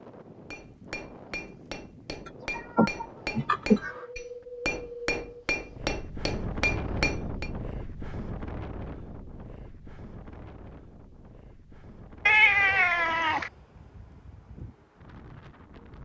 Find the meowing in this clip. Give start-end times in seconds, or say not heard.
2.2-4.0, 12.2-13.5.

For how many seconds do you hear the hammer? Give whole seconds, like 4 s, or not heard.
7 s.